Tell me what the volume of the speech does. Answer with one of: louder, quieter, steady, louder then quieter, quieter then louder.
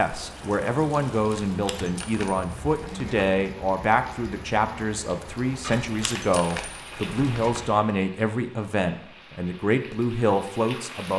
steady.